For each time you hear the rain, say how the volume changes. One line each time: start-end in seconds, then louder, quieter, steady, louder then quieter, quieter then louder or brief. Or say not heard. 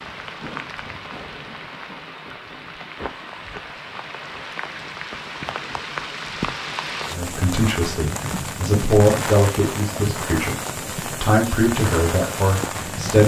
0.0-13.2 louder.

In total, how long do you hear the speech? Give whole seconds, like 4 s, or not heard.
6 s.